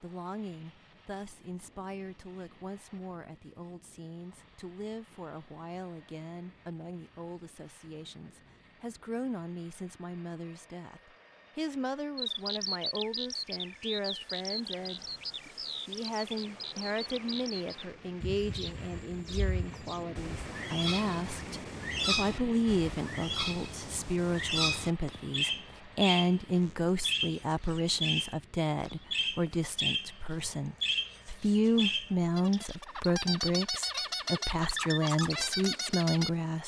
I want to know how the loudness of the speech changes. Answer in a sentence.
The loudness of the speech goes up.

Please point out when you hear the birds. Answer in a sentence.
The birds can be heard from 12.2 to 36.6 s.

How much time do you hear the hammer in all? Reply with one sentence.
You can't hear the hammer here.